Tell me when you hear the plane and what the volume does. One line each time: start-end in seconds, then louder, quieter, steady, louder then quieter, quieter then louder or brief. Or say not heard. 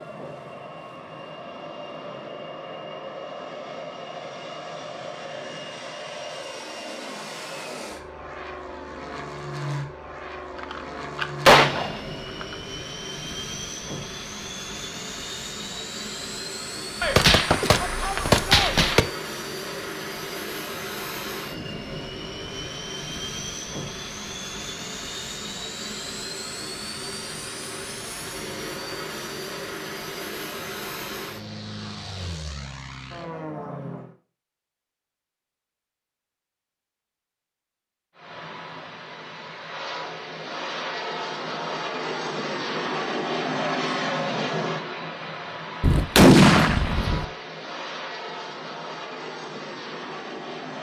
0.0-34.1 steady
38.1-50.7 louder then quieter.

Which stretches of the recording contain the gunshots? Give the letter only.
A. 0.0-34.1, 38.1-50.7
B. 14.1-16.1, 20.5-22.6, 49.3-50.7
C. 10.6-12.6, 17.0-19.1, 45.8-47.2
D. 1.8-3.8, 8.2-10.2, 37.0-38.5
C.